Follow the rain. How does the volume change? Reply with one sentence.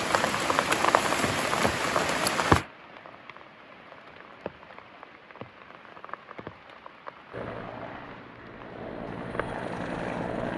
The volume of the rain goes down.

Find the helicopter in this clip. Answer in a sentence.
You can hear the helicopter from 7.3 to 10.5 s.